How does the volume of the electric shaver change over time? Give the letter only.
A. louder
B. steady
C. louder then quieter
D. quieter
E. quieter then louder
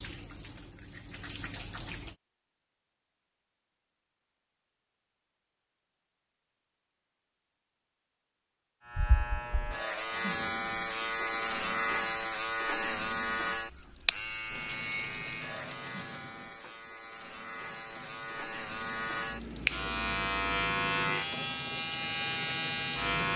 E.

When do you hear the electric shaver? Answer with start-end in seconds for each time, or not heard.
8.8-23.3.